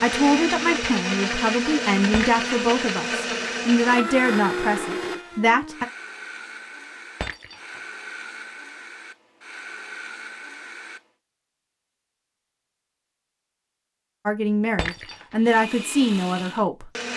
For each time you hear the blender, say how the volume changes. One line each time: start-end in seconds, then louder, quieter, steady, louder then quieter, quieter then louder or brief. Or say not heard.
0.0-11.1 quieter
15.3-17.1 brief.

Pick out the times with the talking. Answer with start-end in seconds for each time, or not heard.
0.0-5.8, 14.2-16.9.